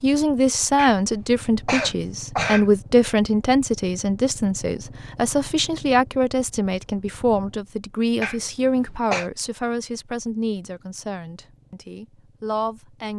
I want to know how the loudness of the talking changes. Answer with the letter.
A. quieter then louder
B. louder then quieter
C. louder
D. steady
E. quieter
E.